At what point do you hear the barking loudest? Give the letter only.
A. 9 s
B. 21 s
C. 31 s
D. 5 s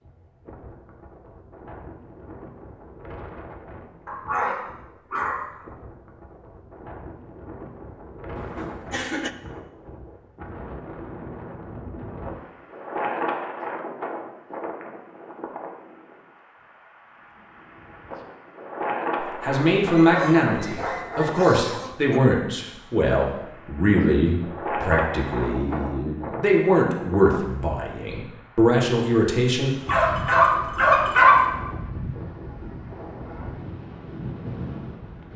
C.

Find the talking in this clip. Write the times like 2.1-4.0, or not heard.
19.2-29.7.